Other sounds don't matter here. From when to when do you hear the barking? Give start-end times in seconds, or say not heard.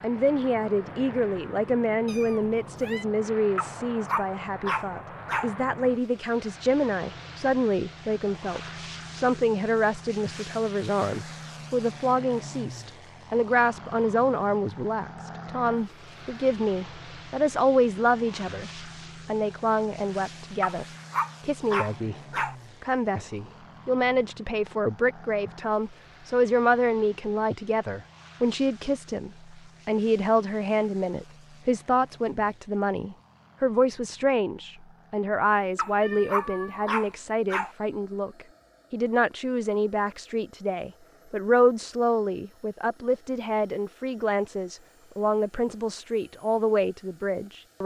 3.5-5.5, 20.6-22.6, 35.8-37.7.